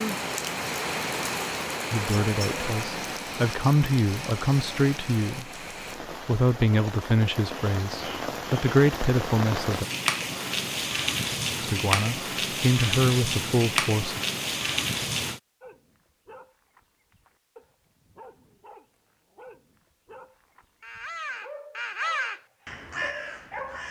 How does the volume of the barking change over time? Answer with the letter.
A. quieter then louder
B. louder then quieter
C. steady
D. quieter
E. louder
E.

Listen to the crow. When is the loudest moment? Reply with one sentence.
The volume of the crow peaks at 22 seconds.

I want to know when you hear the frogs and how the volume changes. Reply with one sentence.
You can't hear the frogs here.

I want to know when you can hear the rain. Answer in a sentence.
The rain can be heard from 0.0 to 15.4 s.